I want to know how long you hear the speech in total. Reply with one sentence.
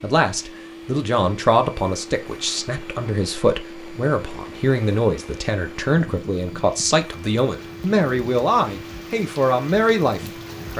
The speech can be heard for 11 seconds in total.